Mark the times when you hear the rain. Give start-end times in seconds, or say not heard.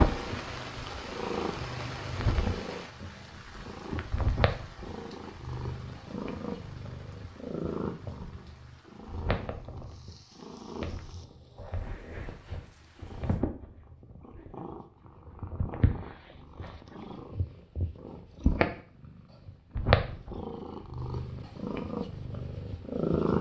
0.0-13.4.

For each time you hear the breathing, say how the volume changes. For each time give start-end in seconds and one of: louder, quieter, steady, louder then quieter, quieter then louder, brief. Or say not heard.
not heard.